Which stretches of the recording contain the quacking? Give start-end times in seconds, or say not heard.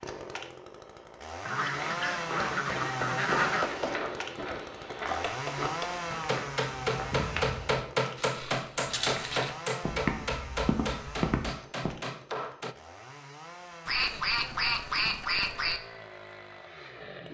1.4-3.8, 13.8-15.8.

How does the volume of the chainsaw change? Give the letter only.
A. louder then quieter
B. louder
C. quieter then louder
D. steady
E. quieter
E.